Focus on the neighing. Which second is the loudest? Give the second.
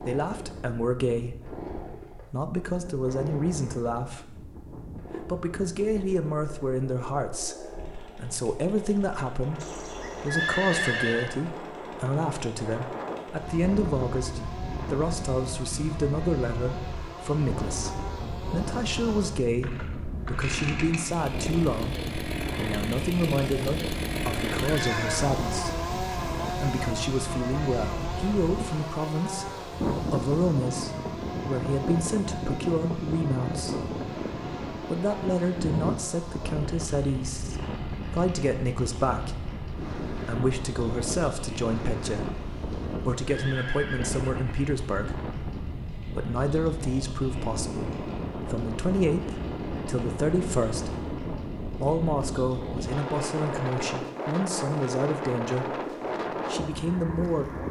11 s.